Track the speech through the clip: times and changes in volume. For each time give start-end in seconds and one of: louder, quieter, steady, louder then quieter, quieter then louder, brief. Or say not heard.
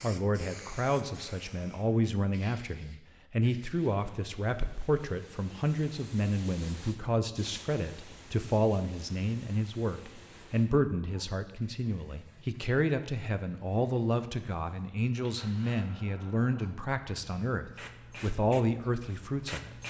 0.0-19.8 steady.